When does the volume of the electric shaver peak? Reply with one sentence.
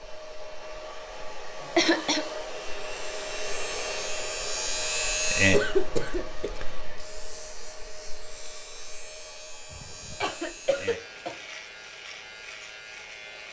The volume of the electric shaver peaks at 5 seconds.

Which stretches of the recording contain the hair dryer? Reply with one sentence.
You can hear the hair dryer from 0.0 to 13.4 s.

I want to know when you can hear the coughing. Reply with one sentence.
You can hear the coughing from 1.6 to 2.2 s, from 5.5 to 6.5 s and from 9.7 to 11.3 s.